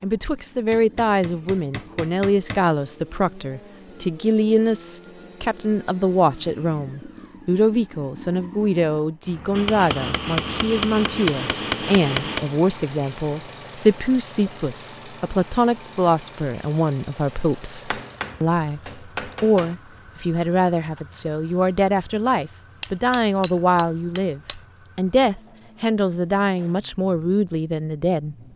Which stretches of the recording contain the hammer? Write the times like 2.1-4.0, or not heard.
0.7-2.6, 9.5-12.5, 17.8-19.8, 22.8-24.6.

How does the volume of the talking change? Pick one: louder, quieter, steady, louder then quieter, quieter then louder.
steady.